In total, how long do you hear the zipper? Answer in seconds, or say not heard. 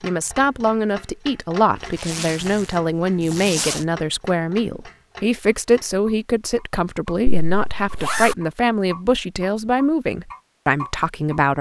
2 s.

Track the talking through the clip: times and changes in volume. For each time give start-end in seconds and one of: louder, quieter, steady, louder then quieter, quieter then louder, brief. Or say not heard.
0.0-11.5 steady.